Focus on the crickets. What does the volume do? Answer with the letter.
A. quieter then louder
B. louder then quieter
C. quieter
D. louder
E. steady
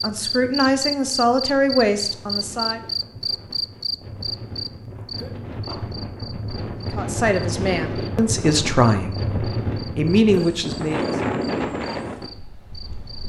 C.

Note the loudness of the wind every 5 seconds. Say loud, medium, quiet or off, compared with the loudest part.
quiet, loud, loud.